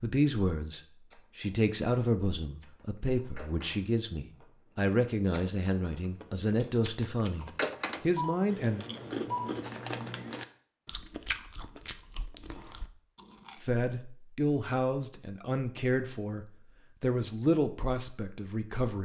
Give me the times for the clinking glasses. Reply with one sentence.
You can't hear the clinking glasses here.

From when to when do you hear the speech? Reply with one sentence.
The speech can be heard from 0.0 to 8.8 s and from 13.6 to 19.0 s.